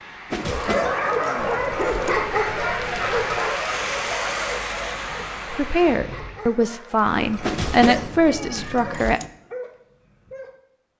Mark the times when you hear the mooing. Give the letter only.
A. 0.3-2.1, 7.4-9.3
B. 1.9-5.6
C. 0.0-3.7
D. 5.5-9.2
A.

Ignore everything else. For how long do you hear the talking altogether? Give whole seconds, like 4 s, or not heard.
4 s.